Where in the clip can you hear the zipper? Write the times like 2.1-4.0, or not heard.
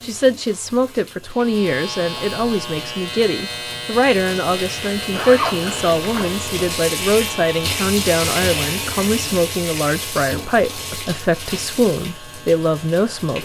5.1-6.4.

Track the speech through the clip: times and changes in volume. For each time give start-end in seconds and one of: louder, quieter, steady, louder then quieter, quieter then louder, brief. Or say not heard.
0.0-13.3 steady.